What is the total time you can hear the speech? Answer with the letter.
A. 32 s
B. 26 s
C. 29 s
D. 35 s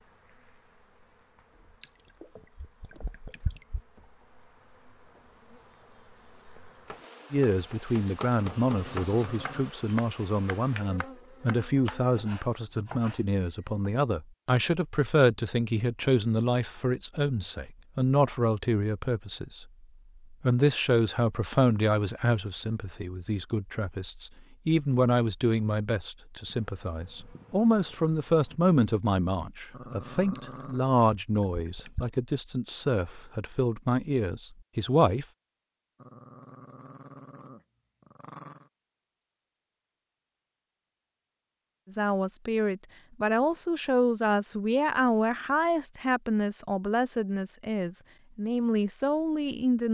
D.